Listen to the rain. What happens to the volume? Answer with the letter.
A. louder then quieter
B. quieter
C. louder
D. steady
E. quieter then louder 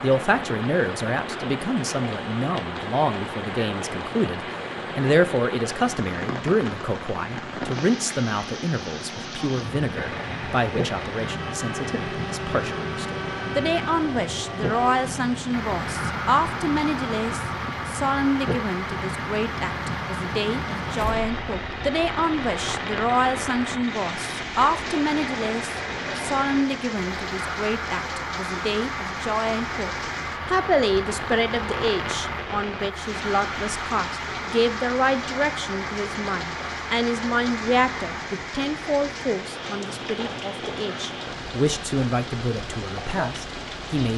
D.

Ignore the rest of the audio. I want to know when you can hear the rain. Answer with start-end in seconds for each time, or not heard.
0.0-44.1.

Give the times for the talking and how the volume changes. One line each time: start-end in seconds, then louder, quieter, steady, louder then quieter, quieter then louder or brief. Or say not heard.
0.0-44.1 steady.